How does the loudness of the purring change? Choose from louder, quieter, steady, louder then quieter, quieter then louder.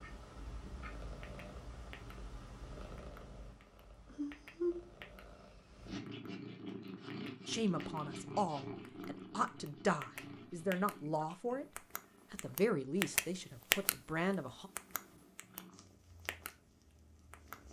louder then quieter.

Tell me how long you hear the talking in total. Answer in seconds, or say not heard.
7 s.